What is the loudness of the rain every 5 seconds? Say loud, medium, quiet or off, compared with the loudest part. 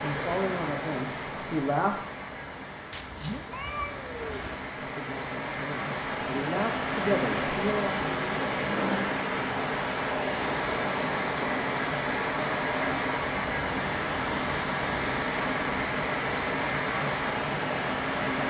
medium, loud, loud, loud.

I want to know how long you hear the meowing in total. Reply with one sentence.
You can hear the meowing for 2 seconds altogether.